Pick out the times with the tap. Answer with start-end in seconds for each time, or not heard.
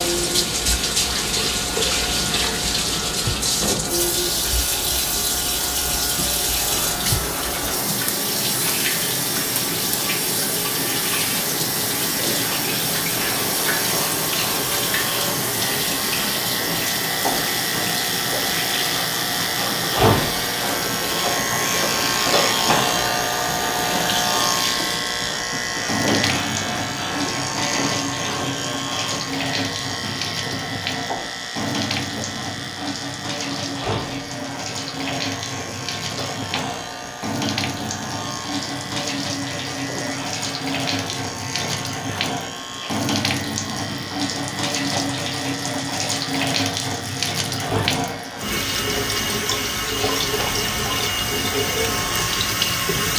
0.0-53.1.